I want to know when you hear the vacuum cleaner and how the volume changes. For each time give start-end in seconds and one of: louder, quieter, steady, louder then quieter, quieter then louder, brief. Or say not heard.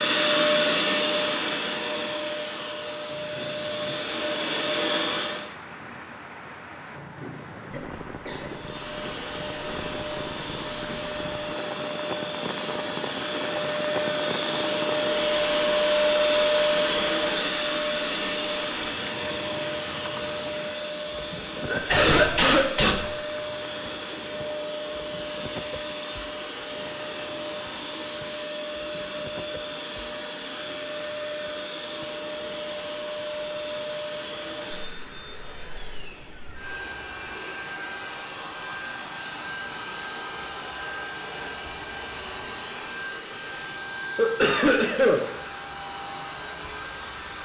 0.0-5.5 quieter then louder
8.4-47.4 quieter.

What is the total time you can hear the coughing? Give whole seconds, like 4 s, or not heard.
3 s.